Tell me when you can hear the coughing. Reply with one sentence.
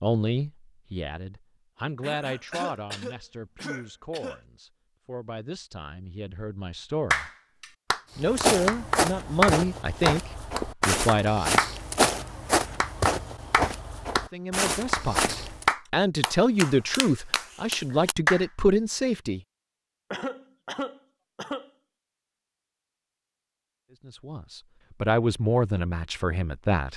The coughing can be heard from 2.0 to 4.4 s and from 20.1 to 21.7 s.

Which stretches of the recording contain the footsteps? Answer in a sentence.
You can hear the footsteps from 8.2 to 15.8 s.